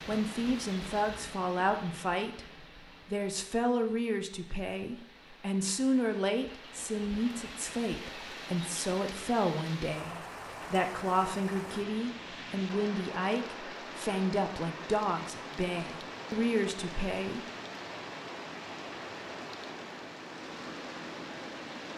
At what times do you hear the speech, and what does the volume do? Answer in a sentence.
You can hear the speech from 0.1 to 17.4 s, at a steady volume.